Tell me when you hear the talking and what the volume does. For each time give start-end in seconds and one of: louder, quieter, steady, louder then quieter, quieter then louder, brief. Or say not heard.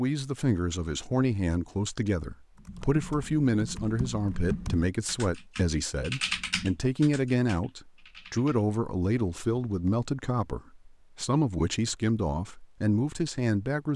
0.0-13.9 steady.